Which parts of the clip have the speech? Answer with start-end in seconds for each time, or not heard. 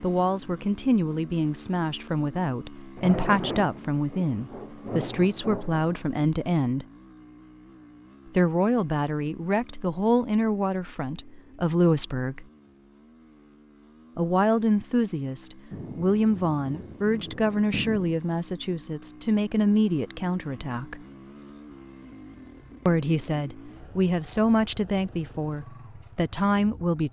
0.0-6.8, 8.3-12.4, 14.2-21.0, 22.9-27.0.